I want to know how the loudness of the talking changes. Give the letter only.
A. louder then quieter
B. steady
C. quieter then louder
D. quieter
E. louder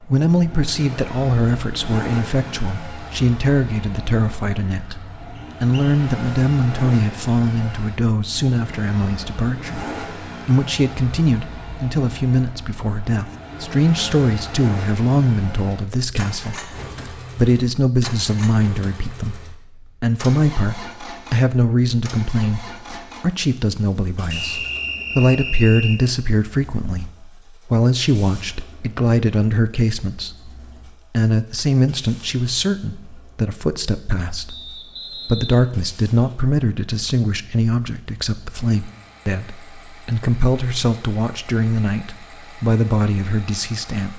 B.